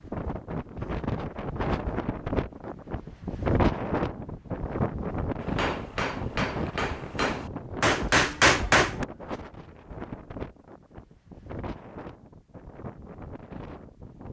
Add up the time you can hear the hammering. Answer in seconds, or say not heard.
4 s.